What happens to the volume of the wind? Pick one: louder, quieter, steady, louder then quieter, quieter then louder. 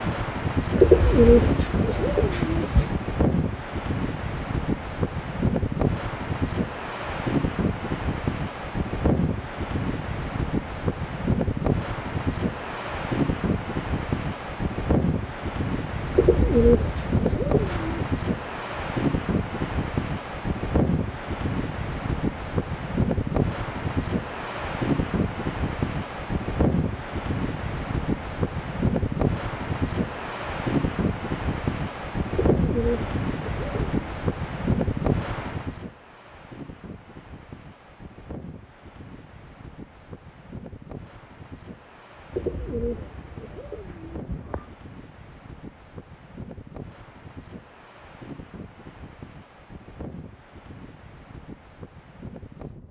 quieter.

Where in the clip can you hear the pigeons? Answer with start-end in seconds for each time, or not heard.
0.8-3.0, 16.1-18.1, 32.4-33.9, 42.3-44.7.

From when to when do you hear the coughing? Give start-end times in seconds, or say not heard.
not heard.